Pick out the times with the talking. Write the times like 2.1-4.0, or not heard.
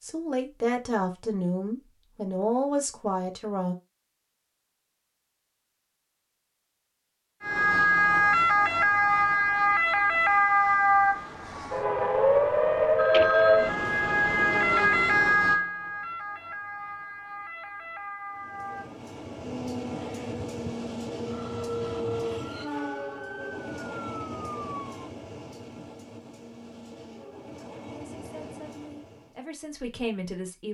0.0-3.8, 27.9-30.6.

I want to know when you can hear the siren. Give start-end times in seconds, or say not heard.
7.4-25.1.